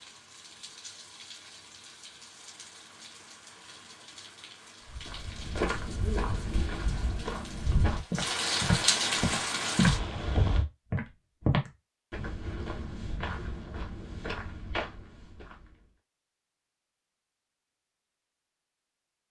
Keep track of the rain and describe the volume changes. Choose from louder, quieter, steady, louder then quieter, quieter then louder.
louder.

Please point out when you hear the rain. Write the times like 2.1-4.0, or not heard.
0.0-10.7.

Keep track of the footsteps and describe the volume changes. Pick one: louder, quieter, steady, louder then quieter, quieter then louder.
louder then quieter.